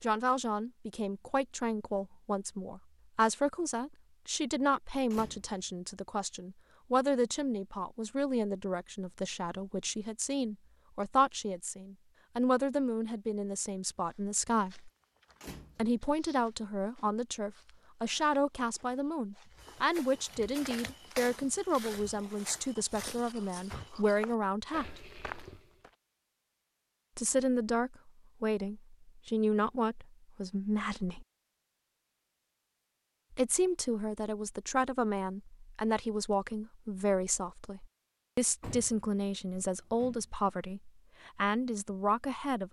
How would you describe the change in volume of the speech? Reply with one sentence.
The loudness of the speech stays about the same.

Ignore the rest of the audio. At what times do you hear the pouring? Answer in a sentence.
You can't hear the pouring here.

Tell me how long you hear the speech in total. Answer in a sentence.
You can hear the speech for 38 seconds altogether.